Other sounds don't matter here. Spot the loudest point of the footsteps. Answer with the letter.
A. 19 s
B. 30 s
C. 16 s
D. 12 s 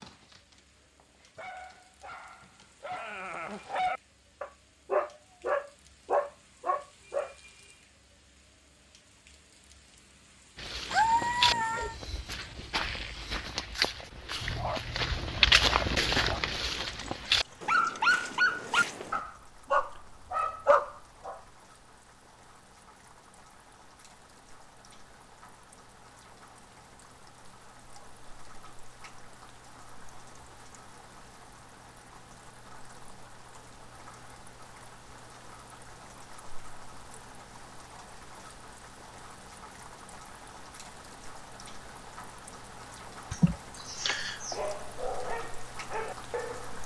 C.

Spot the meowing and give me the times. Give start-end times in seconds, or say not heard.
10.9-11.9.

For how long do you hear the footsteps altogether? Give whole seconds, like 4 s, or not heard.
9 s.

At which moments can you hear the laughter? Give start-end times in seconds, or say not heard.
43.3-44.6.